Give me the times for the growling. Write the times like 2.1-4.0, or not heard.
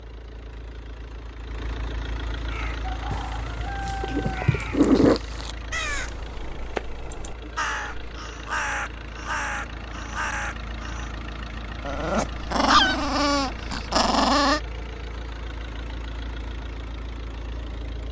3.1-5.2, 11.8-14.6.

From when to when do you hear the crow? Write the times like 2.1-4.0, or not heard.
2.5-11.1.